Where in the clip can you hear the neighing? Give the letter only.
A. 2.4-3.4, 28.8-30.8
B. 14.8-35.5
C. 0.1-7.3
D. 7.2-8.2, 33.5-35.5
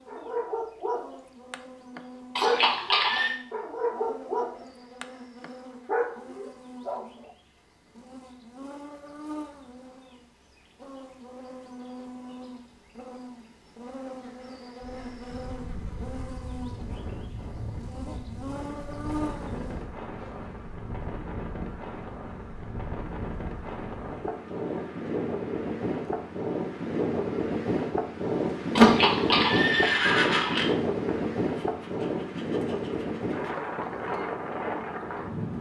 A.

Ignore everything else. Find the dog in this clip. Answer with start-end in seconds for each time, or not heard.
0.1-7.3.